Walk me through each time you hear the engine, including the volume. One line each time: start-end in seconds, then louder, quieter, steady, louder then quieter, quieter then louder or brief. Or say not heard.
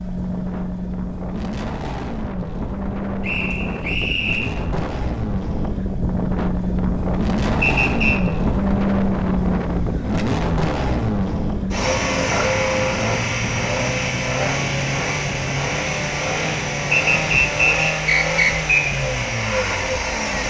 0.0-20.4 louder.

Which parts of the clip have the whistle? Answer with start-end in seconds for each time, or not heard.
3.2-4.5, 7.6-8.2, 16.9-18.9.